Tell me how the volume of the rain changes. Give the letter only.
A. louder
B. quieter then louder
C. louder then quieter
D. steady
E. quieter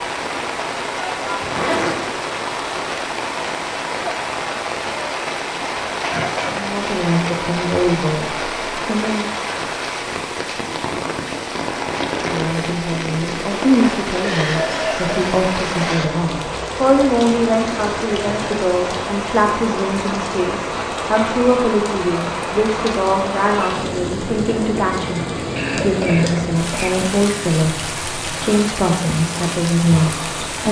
D.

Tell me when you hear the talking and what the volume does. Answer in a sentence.
You can hear the talking briefly from 6.5 to 9.3 s; and from 12.2 to 30.6 s, at a steady volume.